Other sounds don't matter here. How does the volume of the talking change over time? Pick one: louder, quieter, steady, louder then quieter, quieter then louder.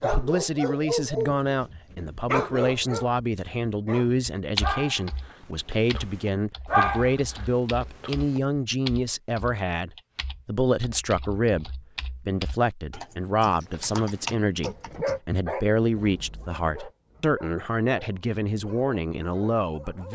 steady.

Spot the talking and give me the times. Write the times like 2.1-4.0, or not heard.
0.0-20.1.